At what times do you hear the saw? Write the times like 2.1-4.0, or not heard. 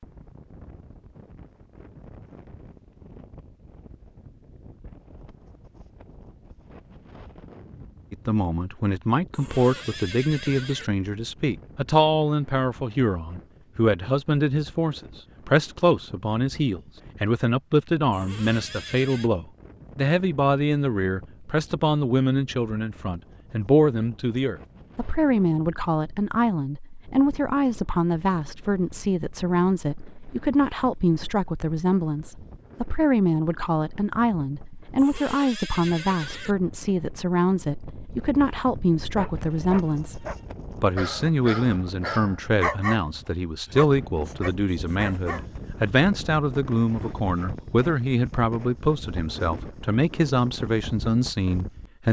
not heard.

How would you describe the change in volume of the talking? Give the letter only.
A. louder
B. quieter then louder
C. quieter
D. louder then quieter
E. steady
E.